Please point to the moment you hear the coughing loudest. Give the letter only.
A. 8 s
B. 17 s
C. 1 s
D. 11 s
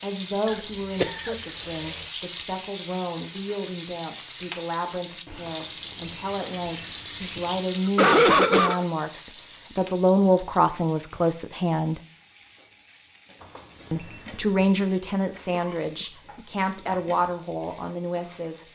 A.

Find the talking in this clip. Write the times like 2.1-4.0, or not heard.
0.0-11.9, 13.9-18.7.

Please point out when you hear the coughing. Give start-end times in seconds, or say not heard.
0.5-2.0, 7.3-8.8, 15.5-17.0.